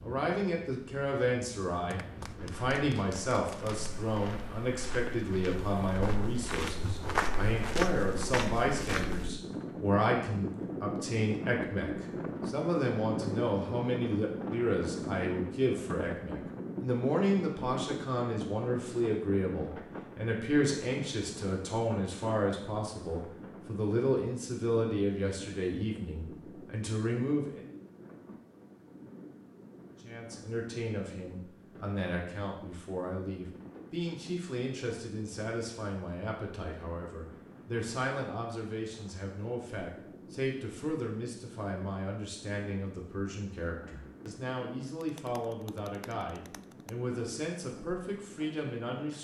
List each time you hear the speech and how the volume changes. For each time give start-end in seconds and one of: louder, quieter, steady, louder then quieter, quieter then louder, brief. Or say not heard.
0.0-27.7 steady
30.0-49.1 steady.